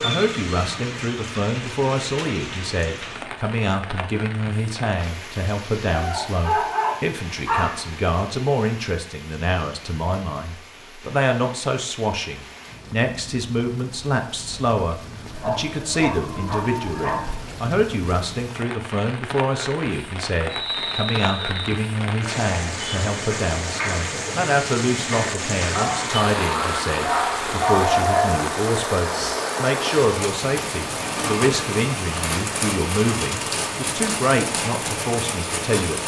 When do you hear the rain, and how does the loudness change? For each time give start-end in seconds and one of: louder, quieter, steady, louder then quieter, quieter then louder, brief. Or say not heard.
0.0-36.0 quieter then louder.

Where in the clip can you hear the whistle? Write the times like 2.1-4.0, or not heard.
20.4-21.8.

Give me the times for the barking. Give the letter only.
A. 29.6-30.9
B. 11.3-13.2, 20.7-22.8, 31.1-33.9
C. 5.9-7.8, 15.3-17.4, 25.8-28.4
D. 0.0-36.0
C.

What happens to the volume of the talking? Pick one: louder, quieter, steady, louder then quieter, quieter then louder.
steady.